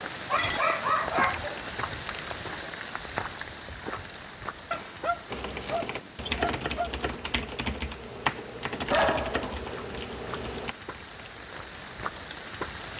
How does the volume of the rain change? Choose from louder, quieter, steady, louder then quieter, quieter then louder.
quieter then louder.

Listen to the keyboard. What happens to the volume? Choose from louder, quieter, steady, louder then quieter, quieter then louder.
quieter.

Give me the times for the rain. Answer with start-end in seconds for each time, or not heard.
0.0-12.9.